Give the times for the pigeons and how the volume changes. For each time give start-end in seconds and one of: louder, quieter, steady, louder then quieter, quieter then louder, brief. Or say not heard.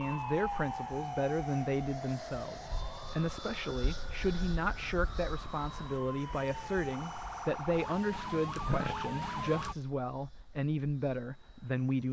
not heard.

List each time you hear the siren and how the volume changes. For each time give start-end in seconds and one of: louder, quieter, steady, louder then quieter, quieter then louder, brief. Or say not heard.
0.0-9.8 quieter then louder.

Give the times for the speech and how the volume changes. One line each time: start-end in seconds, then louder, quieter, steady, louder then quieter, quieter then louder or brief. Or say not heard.
0.0-12.0 steady.